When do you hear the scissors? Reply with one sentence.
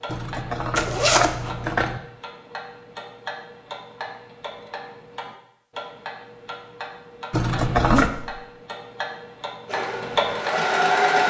You can hear the scissors from 0.1 to 2.0 s and from 7.3 to 8.1 s.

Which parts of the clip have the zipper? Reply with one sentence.
The zipper can be heard from 0.8 to 1.4 s and from 7.8 to 8.4 s.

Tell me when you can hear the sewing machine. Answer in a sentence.
You can hear the sewing machine from 9.7 to 11.2 s.